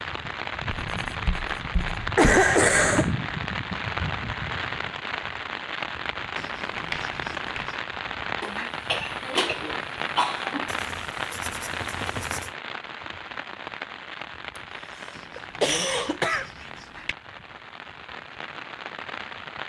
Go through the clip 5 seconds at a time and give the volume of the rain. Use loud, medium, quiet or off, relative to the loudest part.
loud, loud, loud, medium.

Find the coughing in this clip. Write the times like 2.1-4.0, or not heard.
2.1-3.1, 8.4-10.7, 15.3-16.4.